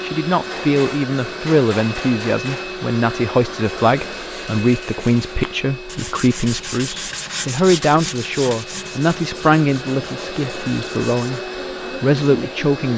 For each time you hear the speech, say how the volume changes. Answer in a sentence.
The speech can be heard from 0.0 to 11.4 s, at a steady volume; and briefly from 12.0 to 12.9 s.